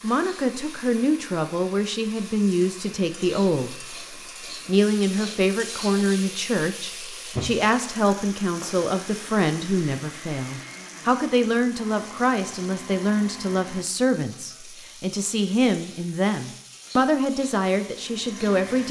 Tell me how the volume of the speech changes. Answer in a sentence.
The loudness of the speech stays about the same.